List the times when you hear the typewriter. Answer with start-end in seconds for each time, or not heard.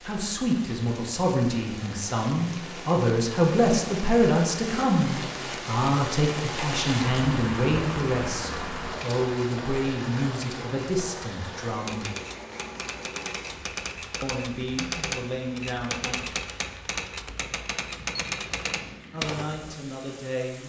11.8-19.8.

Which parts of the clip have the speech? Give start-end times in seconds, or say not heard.
0.0-12.1, 14.2-16.3, 19.1-20.6.